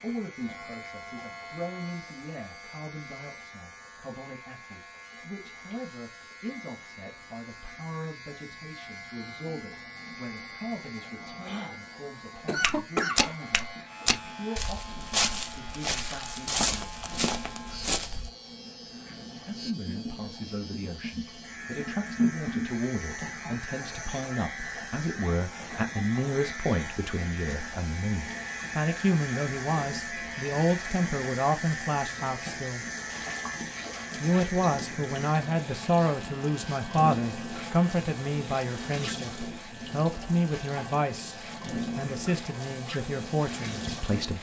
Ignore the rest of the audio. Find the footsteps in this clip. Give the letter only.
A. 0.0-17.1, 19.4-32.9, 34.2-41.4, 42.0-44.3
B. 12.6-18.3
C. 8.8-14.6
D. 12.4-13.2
B.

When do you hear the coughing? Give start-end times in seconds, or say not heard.
12.4-13.2.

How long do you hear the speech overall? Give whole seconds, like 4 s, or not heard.
40 s.